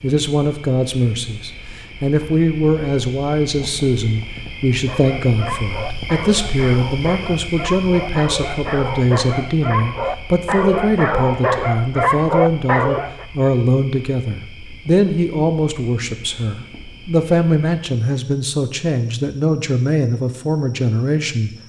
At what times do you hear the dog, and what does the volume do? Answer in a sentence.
You can hear the dog from 4.8 to 13.2 s, getting louder.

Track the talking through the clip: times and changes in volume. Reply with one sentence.
The talking can be heard from 0.0 to 21.5 s, at a steady volume.